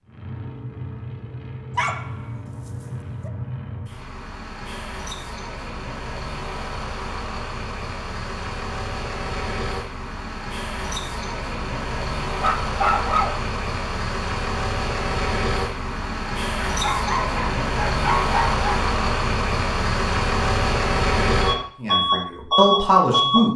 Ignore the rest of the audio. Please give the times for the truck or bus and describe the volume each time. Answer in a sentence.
You can hear the truck or bus from 0.0 to 23.4 s, getting louder.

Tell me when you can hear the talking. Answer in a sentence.
You can hear the talking from 21.8 to 23.5 s.